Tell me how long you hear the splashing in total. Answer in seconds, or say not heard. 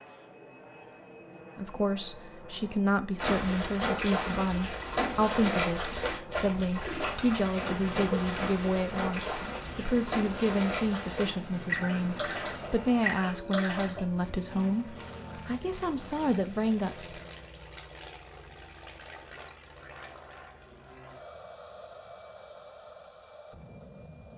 11 s.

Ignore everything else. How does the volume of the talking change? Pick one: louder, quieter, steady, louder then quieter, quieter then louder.
steady.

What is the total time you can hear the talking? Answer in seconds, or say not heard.
16 s.